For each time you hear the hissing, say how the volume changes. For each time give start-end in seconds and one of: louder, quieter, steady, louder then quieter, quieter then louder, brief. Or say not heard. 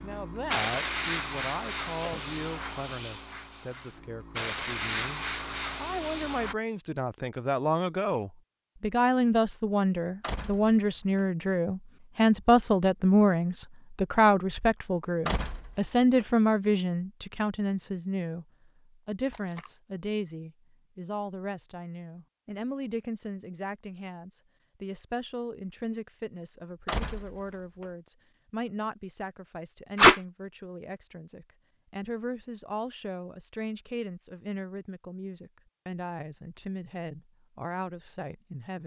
0.0-6.5 quieter then louder.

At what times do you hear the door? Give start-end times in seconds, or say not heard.
10.2-11.2, 15.2-16.2, 26.9-27.9.